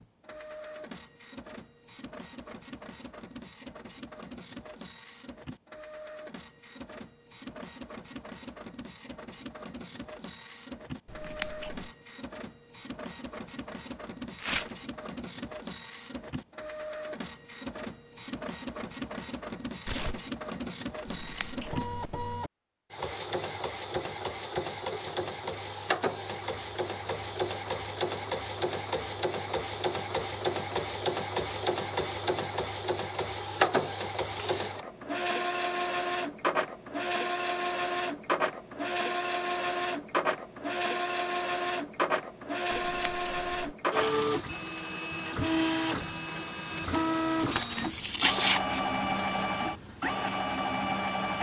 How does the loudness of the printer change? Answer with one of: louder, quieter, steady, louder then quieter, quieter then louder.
louder.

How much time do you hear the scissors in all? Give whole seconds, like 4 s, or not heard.
3 s.